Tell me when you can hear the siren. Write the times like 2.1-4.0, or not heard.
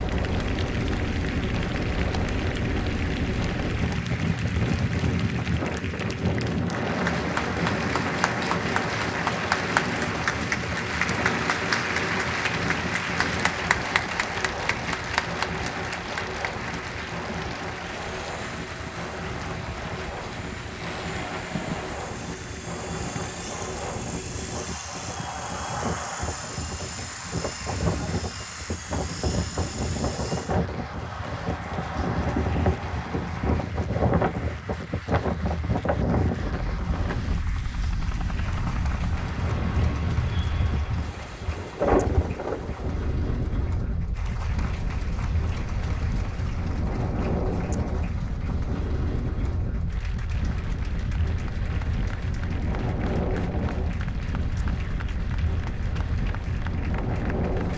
not heard.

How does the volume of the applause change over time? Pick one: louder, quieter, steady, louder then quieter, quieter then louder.
quieter.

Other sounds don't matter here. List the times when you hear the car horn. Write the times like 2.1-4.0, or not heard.
not heard.